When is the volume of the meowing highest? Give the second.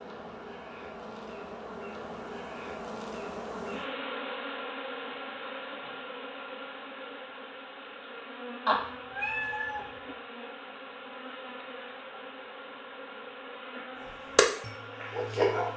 9 s.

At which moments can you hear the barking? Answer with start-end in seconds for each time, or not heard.
14.3-15.7.